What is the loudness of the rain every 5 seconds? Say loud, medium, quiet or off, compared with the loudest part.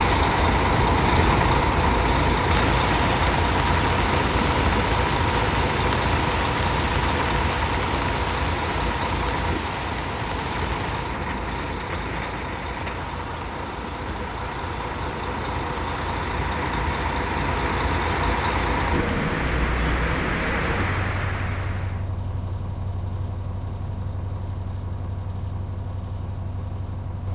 loud, loud, medium, loud, loud, off.